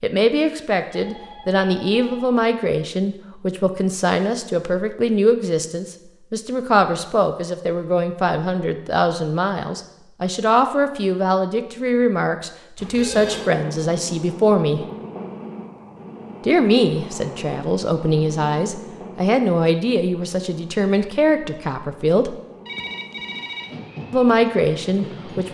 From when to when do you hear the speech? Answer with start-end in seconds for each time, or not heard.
0.0-14.8, 16.4-22.4, 24.1-25.4.